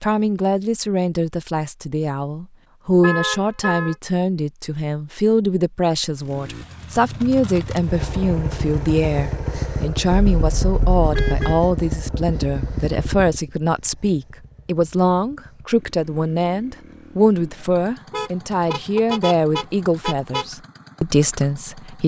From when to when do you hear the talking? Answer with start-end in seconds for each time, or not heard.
0.0-22.0.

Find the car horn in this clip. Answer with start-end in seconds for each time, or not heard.
3.0-4.0, 10.3-11.6, 18.1-20.4.